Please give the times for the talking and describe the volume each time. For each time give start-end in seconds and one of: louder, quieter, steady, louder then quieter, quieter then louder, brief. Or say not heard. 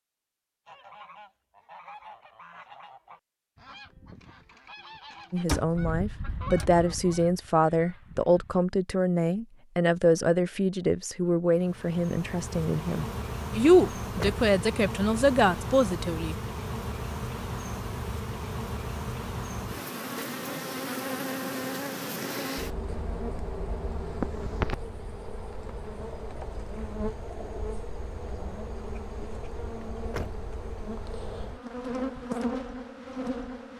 5.3-16.4 steady.